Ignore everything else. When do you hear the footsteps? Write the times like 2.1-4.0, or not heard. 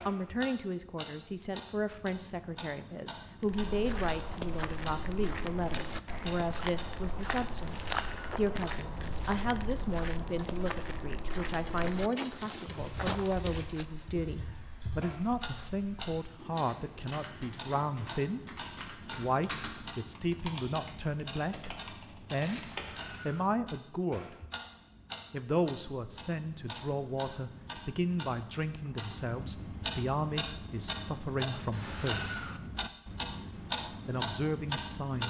3.4-13.8.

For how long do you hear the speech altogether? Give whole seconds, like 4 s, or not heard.
33 s.